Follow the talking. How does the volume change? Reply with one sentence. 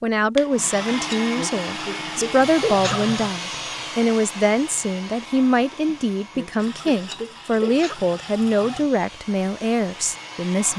The loudness of the talking stays about the same.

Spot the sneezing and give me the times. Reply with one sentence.
The sneezing can be heard from 0.9 to 3.1 s and from 5.8 to 8.0 s.